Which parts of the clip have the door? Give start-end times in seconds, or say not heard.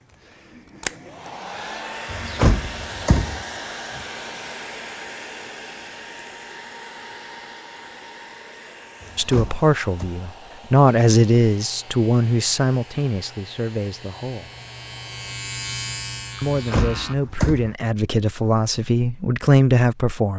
2.1-3.5, 9.0-10.1, 16.4-17.8.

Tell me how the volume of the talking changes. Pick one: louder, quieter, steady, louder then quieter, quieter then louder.
quieter then louder.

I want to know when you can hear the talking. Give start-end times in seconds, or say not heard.
9.2-14.5, 16.4-20.3.